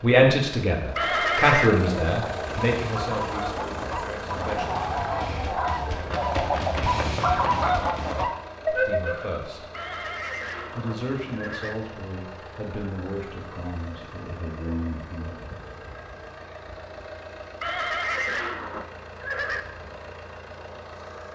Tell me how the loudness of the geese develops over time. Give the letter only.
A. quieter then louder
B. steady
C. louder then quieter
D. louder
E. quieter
D.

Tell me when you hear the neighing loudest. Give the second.
1 s.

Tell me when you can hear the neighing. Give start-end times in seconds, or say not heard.
0.9-1.7, 9.7-11.8, 17.6-19.6.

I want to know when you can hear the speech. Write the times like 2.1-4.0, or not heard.
0.0-4.8, 8.8-9.6, 10.8-15.3.